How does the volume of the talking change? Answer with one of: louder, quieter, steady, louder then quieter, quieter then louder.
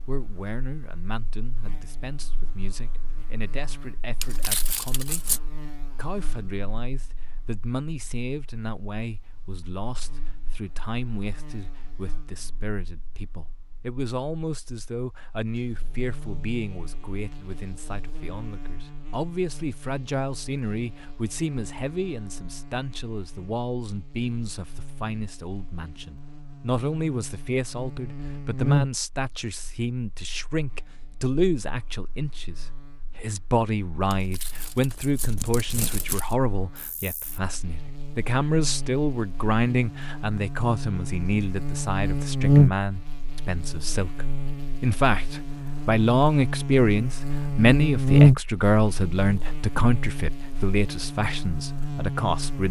louder.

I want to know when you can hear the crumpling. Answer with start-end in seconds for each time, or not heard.
4.2-5.4, 34.1-36.4.